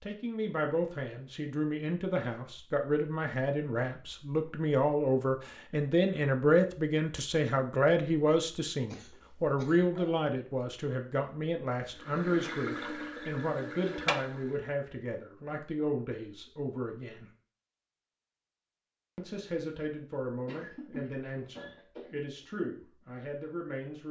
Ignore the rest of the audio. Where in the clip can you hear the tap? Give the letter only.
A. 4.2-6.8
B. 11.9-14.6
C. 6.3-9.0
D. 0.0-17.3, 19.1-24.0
B.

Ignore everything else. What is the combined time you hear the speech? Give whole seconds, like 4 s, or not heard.
22 s.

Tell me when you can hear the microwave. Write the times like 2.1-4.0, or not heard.
not heard.